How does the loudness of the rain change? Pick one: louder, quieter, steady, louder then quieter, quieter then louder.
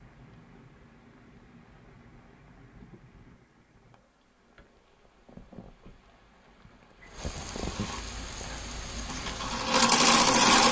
louder.